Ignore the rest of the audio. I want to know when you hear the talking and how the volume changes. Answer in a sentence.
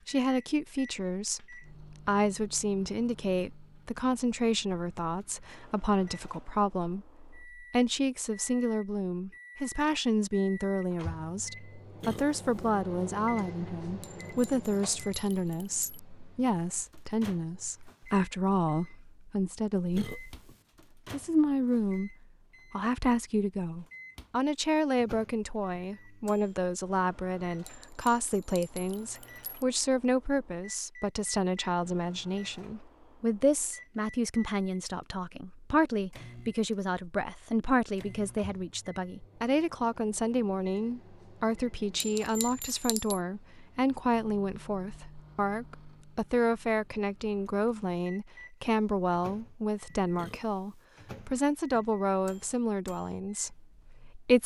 You can hear the talking from 0.1 to 20.1 s, at a steady volume; and from 21.1 to 54.4 s, at a steady volume.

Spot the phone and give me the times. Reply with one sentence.
You can't hear the phone here.